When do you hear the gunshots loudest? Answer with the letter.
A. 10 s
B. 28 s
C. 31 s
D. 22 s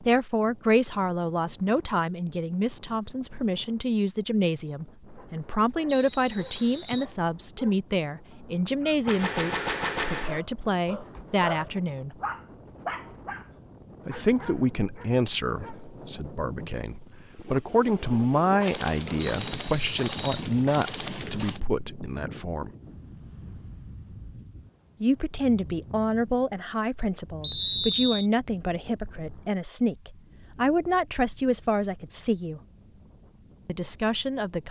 A.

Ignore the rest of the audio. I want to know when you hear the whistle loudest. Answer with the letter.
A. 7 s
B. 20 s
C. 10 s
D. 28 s
D.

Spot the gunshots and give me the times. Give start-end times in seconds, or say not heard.
9.1-10.4, 18.6-21.6.